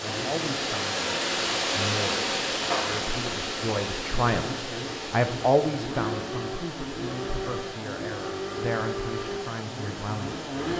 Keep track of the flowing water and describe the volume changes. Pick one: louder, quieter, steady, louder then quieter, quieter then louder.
quieter.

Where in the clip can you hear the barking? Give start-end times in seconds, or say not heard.
not heard.